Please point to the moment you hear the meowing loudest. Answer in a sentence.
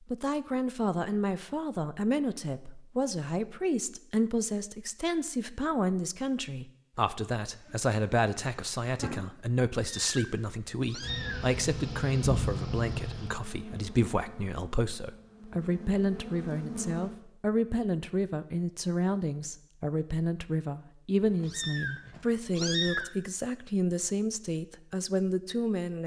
The volume of the meowing peaks at 23 seconds.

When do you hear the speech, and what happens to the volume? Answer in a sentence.
The speech can be heard from 0.1 to 26.0 s, at a steady volume.